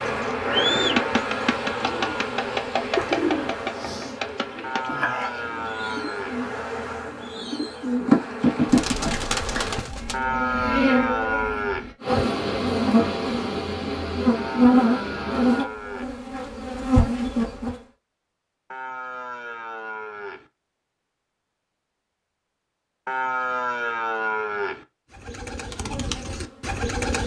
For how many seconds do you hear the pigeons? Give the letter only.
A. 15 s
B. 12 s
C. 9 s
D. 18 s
B.